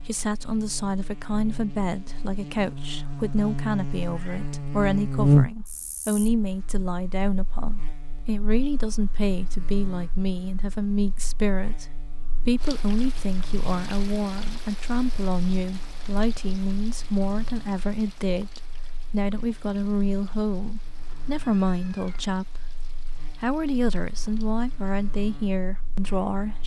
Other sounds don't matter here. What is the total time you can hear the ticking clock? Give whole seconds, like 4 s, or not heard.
not heard.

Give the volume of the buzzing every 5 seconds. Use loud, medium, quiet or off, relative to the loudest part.
medium, loud, quiet, quiet, quiet, quiet.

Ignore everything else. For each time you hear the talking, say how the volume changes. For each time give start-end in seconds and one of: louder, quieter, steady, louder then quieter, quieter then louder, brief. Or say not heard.
0.0-26.6 steady.